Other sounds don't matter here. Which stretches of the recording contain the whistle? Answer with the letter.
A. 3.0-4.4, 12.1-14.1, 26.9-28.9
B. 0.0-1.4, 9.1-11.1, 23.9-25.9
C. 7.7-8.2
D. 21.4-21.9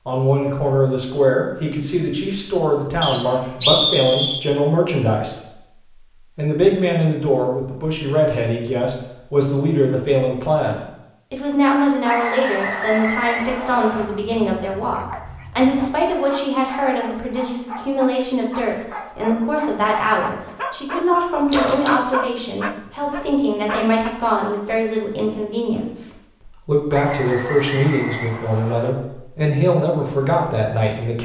A.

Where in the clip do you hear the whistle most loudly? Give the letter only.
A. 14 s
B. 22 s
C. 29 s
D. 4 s
D.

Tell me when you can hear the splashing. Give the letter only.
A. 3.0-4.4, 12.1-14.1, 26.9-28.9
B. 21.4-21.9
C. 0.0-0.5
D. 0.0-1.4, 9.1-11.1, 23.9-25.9
B.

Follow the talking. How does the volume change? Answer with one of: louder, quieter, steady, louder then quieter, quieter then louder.
steady.